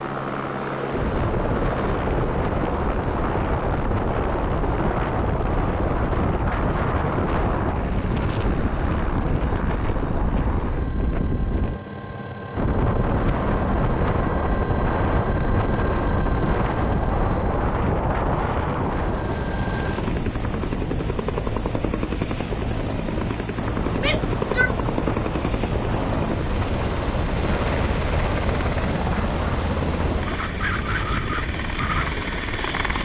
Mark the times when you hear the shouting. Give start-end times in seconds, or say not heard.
23.9-24.7.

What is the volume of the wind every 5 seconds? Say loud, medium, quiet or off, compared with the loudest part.
loud, loud, loud, loud, medium, loud, medium.